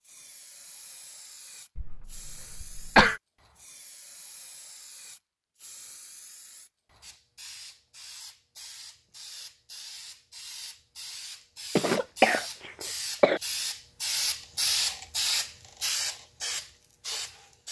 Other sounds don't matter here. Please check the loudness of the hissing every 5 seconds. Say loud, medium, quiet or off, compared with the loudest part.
quiet, quiet, loud, loud.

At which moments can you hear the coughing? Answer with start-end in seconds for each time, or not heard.
1.8-3.2, 11.8-13.4.